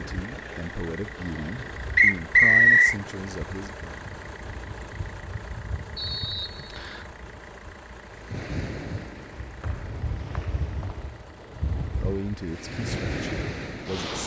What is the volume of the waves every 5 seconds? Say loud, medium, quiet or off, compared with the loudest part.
medium, medium, loud.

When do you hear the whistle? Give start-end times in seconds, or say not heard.
1.9-3.0, 6.0-7.1, 9.6-11.0.